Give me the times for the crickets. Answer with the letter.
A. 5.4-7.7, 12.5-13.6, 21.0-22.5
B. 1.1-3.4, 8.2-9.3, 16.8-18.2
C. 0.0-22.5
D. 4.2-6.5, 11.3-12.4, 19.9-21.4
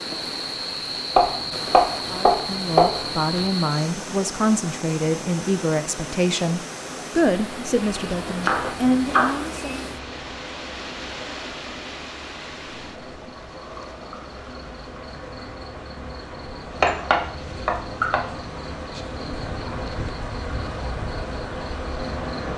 C.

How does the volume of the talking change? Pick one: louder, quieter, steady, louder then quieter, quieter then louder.
steady.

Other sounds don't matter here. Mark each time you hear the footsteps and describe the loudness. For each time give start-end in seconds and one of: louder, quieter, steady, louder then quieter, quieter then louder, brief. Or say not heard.
not heard.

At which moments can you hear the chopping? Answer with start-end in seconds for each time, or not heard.
1.1-3.4, 8.2-9.3, 16.8-18.2.